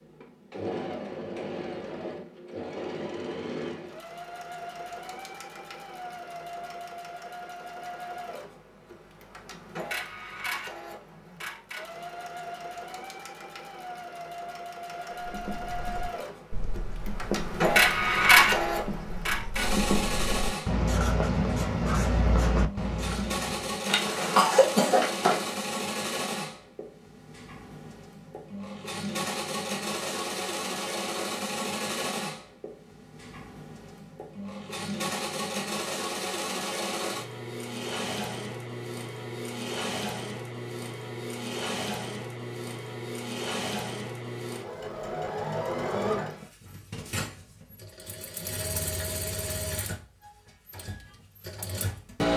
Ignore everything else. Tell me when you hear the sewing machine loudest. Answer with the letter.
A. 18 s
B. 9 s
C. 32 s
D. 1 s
A.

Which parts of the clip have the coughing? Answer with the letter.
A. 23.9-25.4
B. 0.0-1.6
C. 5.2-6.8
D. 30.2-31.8
A.